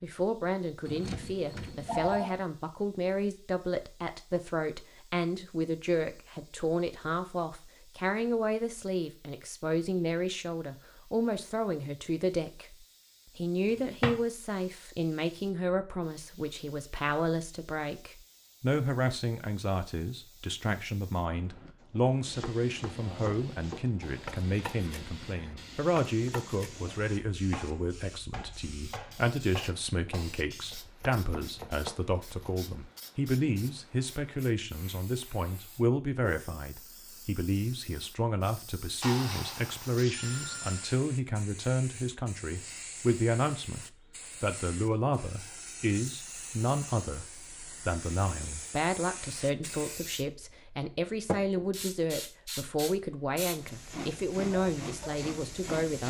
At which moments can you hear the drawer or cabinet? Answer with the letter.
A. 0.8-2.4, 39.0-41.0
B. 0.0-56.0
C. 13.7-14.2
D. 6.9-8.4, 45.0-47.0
C.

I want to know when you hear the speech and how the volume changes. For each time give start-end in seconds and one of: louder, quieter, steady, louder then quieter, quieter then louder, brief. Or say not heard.
0.0-56.0 steady.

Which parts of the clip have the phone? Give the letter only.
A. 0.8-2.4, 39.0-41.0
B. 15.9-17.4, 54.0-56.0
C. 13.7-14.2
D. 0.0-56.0
A.